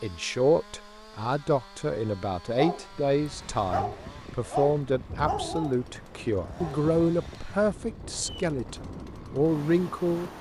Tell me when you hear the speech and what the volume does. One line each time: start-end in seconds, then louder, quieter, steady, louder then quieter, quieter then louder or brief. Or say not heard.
0.0-10.3 steady.